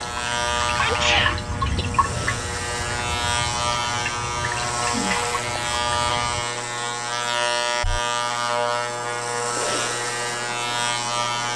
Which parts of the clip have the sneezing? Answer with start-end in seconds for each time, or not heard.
0.8-1.9.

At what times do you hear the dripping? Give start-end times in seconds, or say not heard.
0.0-6.4.